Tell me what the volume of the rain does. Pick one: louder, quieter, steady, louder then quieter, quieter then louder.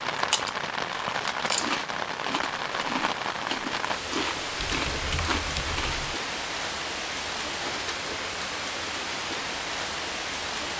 steady.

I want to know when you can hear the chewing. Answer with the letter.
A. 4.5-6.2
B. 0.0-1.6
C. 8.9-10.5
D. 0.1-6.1
D.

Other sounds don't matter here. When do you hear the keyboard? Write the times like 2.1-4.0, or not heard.
4.5-6.2.